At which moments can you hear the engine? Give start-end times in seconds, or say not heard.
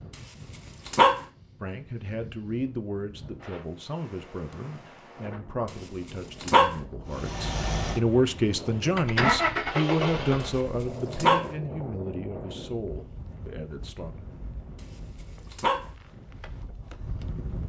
7.1-10.7.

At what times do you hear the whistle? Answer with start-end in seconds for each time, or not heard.
not heard.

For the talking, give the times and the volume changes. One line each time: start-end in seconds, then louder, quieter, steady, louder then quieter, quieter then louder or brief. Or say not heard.
1.6-14.2 louder then quieter.